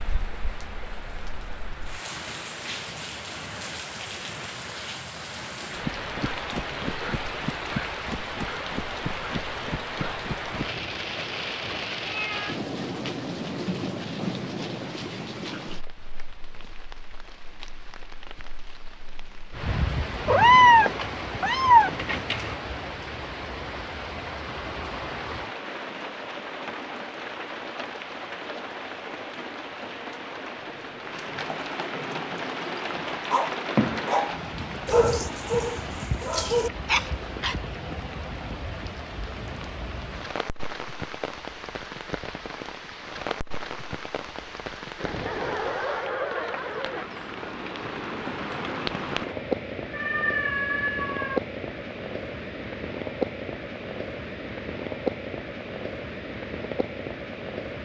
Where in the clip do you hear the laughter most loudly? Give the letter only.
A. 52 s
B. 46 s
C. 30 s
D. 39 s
B.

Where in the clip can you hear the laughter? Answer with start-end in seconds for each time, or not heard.
45.0-47.1.